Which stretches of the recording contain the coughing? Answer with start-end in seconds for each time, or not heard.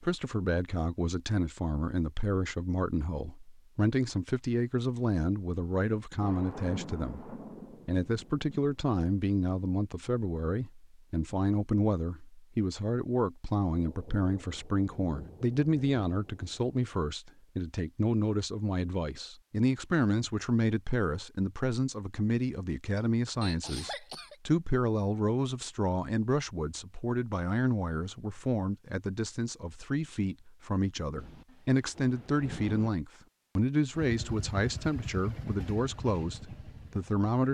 22.9-24.4.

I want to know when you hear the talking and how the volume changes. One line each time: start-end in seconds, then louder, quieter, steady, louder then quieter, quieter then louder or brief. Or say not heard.
0.0-37.4 steady.